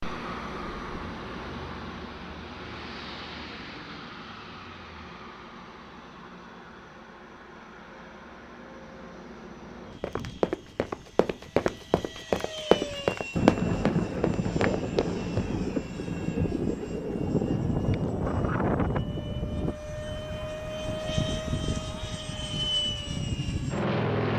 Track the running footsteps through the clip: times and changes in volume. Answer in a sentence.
The running footsteps can be heard from 10.0 to 15.4 s, getting louder then quieter.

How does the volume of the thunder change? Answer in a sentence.
The volume of the thunder goes down.